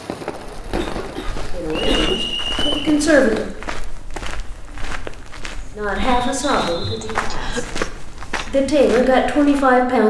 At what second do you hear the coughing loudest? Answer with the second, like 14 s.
2 s.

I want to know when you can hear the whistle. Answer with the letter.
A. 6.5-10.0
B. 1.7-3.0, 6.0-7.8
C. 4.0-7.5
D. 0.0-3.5
B.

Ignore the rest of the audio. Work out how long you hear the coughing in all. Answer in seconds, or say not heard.
2 s.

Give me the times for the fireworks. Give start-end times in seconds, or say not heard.
0.0-3.5.